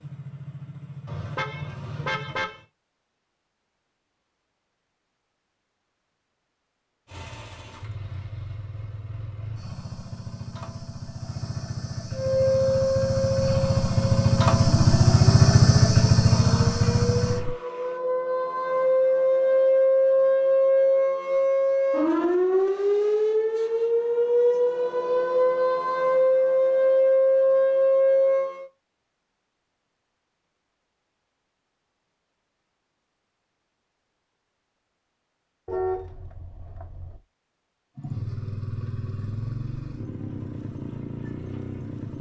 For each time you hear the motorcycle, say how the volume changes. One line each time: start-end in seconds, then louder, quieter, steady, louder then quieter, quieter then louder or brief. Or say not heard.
0.0-2.4 brief
7.0-17.6 louder
38.0-42.1 steady.